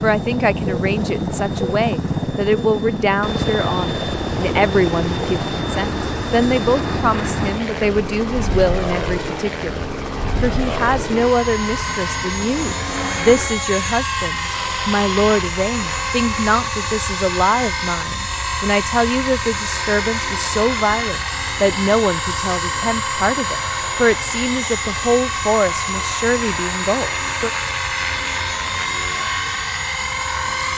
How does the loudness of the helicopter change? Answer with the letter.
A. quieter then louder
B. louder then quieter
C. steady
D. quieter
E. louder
C.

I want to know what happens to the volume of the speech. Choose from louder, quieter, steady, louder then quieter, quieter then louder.
steady.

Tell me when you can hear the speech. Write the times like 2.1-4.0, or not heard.
0.0-27.5.